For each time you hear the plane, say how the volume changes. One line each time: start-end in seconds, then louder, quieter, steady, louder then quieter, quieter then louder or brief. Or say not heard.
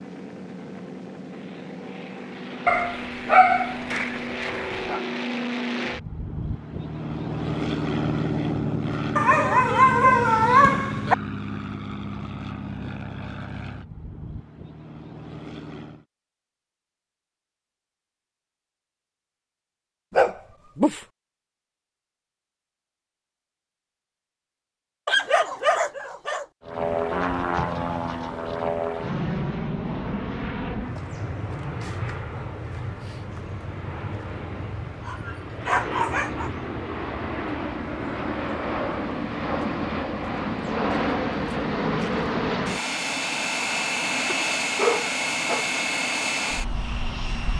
0.0-16.1 louder then quieter
26.6-47.5 quieter then louder.